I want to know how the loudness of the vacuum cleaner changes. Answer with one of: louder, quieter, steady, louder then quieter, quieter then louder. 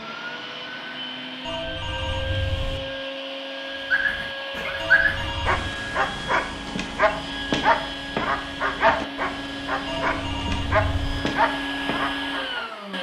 steady.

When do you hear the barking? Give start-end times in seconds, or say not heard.
3.9-12.7.